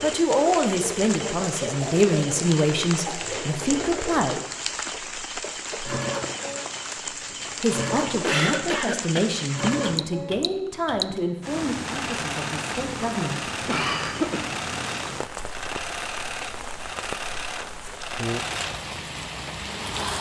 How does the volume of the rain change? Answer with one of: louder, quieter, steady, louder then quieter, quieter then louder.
steady.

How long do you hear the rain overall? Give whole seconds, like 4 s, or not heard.
20 s.